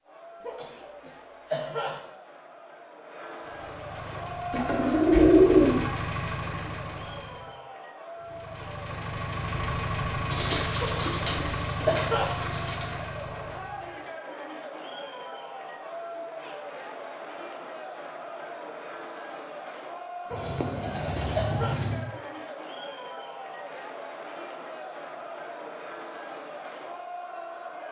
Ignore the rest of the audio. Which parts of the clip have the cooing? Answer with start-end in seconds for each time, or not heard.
4.5-5.8, 10.3-12.8, 20.3-22.1.